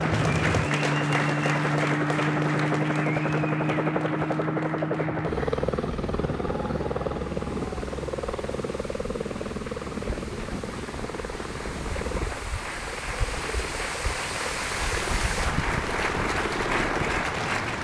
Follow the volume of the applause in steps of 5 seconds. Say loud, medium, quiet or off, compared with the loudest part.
loud, quiet, medium, loud.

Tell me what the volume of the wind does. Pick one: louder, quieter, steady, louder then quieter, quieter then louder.
louder.